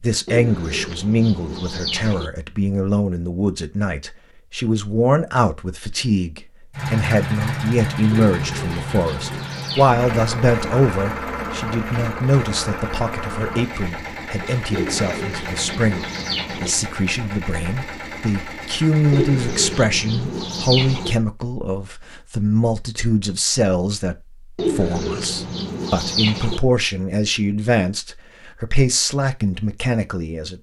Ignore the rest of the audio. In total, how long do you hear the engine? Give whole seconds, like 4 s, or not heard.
13 s.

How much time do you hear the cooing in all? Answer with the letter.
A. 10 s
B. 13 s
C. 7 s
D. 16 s
A.